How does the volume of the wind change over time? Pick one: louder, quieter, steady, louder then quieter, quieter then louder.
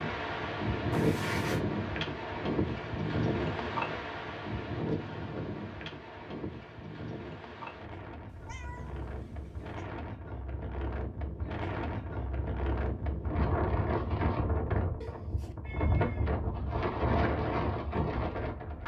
quieter then louder.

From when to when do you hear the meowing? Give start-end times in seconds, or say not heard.
0.9-1.6, 8.2-9.8, 15.0-16.3.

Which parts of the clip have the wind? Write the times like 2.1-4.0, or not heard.
0.0-18.8.